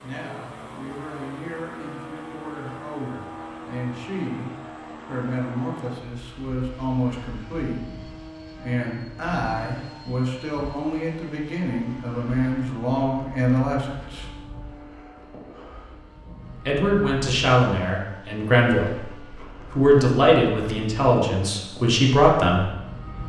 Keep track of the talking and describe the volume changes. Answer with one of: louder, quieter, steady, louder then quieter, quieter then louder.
louder.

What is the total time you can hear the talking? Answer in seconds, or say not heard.
20 s.